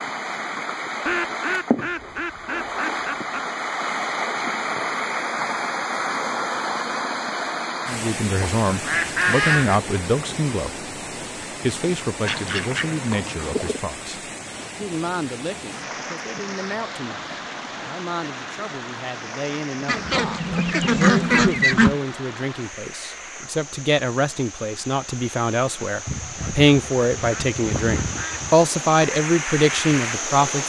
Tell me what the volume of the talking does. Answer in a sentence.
The loudness of the talking goes down, then up.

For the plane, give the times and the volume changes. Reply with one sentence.
You can't hear the plane here.